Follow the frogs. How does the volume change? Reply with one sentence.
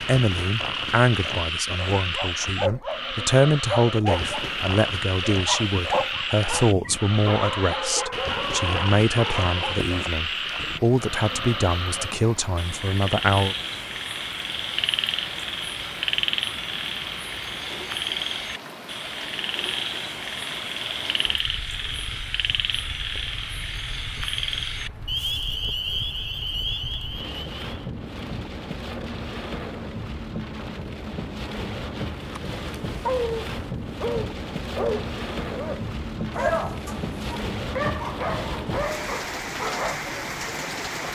The volume of the frogs stays about the same.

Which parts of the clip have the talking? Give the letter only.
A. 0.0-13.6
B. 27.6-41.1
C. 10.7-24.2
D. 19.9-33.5
A.